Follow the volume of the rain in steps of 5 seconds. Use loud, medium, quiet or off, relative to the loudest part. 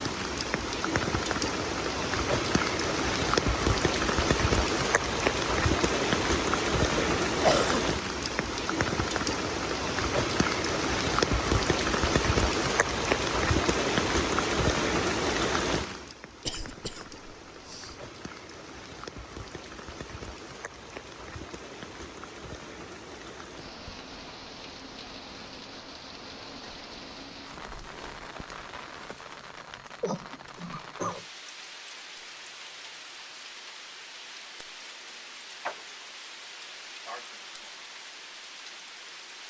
loud, loud, loud, medium, quiet, quiet, quiet, quiet.